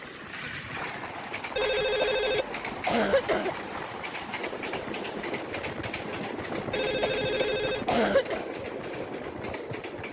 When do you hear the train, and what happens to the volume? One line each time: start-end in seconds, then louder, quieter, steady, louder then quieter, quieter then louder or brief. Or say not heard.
0.0-10.0 steady.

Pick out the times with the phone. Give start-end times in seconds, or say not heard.
1.6-2.5, 6.7-7.8.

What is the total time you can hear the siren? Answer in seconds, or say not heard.
not heard.